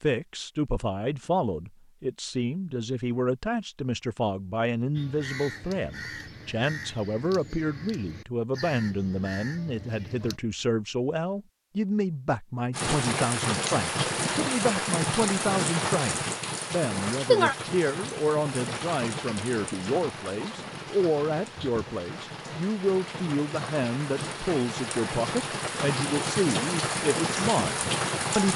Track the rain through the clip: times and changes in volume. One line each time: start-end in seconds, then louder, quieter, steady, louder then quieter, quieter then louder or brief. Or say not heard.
12.7-28.5 quieter then louder.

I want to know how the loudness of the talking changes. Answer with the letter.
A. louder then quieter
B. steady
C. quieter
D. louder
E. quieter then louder
B.